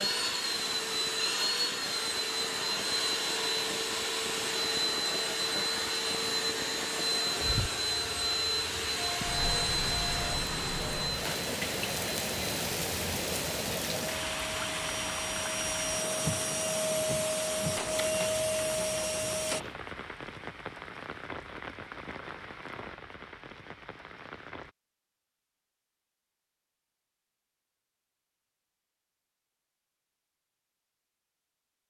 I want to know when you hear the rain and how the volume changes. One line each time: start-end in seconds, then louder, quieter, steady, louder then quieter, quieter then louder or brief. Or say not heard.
0.0-24.8 louder then quieter.